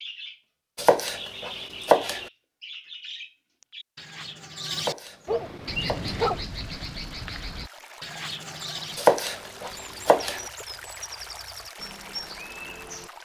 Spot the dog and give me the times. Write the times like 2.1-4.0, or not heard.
5.2-6.5.